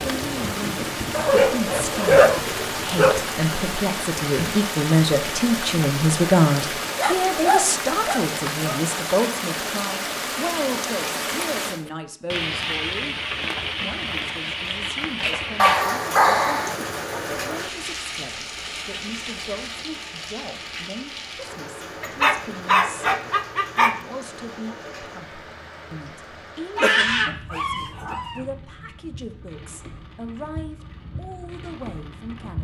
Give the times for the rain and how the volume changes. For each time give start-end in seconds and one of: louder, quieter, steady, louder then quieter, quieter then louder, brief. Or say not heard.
0.0-32.5 quieter.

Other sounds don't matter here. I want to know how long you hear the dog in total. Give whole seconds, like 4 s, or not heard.
9 s.